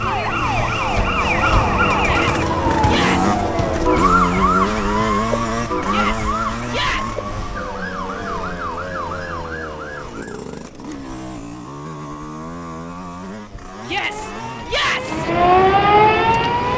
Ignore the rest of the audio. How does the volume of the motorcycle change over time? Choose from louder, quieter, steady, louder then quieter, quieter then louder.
quieter.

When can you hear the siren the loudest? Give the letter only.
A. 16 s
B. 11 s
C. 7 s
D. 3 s
A.